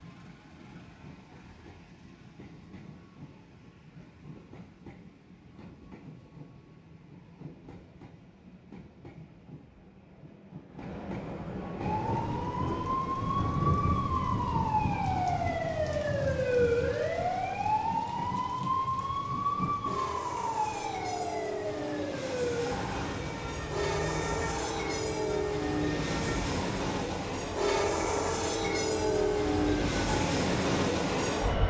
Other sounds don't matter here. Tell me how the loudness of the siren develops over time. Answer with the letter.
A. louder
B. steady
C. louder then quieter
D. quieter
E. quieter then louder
D.